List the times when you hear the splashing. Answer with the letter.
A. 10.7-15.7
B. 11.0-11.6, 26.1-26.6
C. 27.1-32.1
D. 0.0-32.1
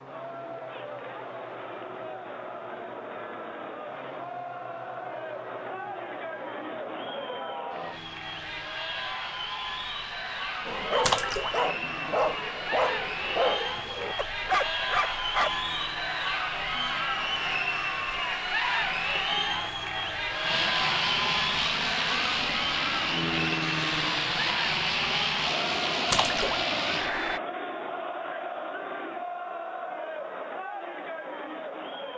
B.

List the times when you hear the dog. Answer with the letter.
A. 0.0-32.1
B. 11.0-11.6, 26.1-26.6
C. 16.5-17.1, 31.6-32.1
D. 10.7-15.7
D.